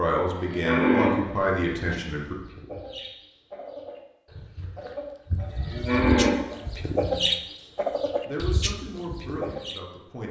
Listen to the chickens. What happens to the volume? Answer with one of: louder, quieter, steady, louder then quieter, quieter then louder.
louder then quieter.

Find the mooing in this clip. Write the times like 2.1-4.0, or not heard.
0.3-2.0, 5.4-7.3.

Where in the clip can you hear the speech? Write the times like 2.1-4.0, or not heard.
0.0-2.4, 8.2-10.2.